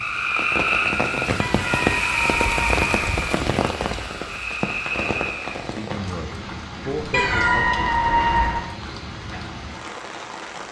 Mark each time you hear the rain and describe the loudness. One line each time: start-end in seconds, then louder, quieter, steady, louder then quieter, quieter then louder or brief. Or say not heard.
0.0-10.6 quieter.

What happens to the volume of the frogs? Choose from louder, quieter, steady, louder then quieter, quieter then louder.
quieter then louder.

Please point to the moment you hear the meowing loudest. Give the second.
8 s.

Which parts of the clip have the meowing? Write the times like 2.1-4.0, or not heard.
1.4-3.2, 7.1-8.7.